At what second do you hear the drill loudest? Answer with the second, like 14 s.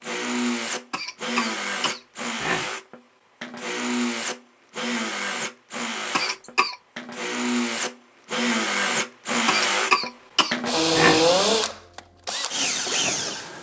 11 s.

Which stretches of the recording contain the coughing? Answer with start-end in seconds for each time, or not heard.
0.9-2.7, 6.1-6.8, 9.4-11.2.